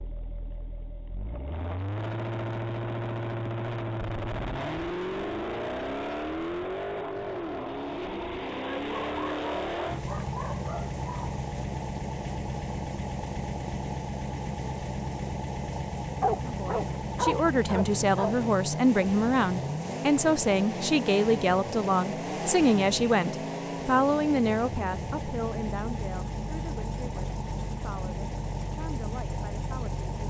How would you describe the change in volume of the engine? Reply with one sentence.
The loudness of the engine stays about the same.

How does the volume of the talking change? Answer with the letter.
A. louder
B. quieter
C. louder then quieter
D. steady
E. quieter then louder
B.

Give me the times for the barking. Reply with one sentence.
The barking can be heard from 8.6 to 11.4 s and from 16.2 to 18.4 s.